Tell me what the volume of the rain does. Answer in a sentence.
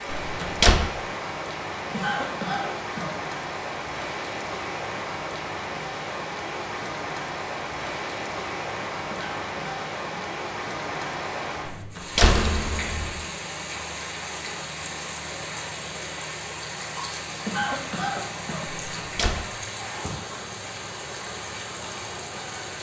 The volume of the rain stays about the same.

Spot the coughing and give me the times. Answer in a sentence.
You can hear the coughing from 1.9 to 3.1 s, from 9.1 to 10.3 s and from 17.4 to 18.6 s.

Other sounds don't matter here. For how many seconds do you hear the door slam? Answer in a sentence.
The door slam can be heard for 3 seconds in total.